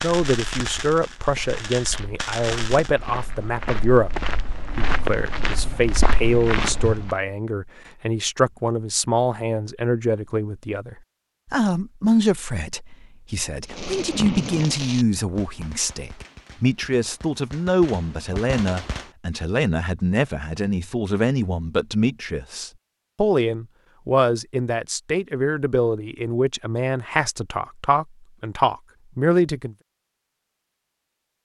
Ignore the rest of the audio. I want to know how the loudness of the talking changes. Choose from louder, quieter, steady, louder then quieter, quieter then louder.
steady.